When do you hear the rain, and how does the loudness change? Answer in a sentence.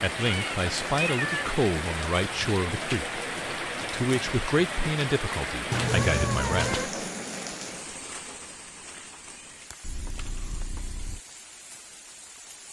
You can hear the rain from 0.0 to 12.6 s, getting quieter.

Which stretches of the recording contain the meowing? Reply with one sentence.
You can hear the meowing from 0.2 to 1.4 s, from 5.7 to 6.9 s and from 9.8 to 11.2 s.